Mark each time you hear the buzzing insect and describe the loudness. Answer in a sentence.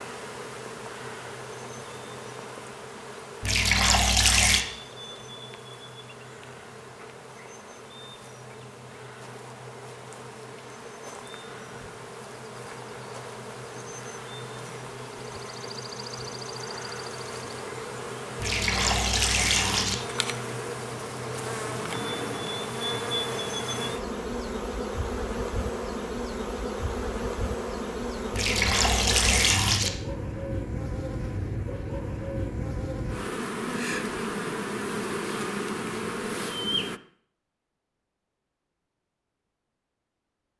You can hear the buzzing insect from 0.0 to 37.0 s, getting louder.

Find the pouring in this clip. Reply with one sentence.
You can hear the pouring from 3.4 to 4.7 s, from 18.4 to 19.9 s and from 28.3 to 29.9 s.